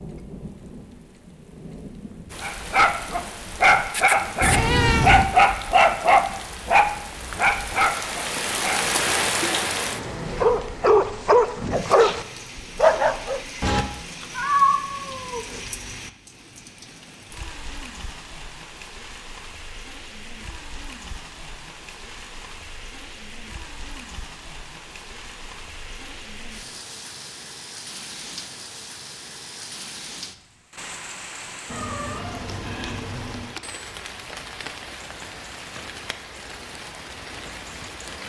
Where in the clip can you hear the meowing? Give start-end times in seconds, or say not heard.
4.4-5.3, 13.6-15.6, 31.6-33.5.